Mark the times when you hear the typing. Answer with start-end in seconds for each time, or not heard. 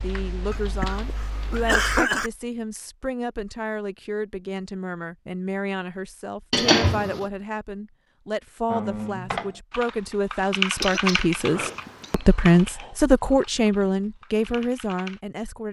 0.0-2.0, 8.7-15.2.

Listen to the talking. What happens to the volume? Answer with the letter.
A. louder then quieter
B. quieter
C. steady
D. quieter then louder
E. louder
E.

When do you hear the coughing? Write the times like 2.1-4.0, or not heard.
0.5-2.3, 6.5-7.2, 10.8-12.2.